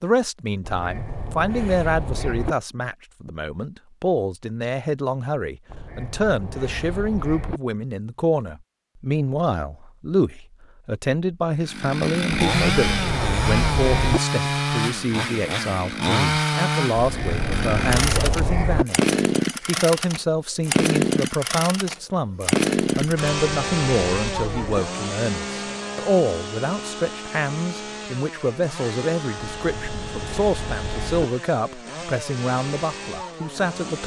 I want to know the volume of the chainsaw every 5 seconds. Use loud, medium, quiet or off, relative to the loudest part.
off, off, loud, loud, loud, medium, medium.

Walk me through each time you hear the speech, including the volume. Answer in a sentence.
You can hear the speech from 0.0 to 34.0 s, at a steady volume.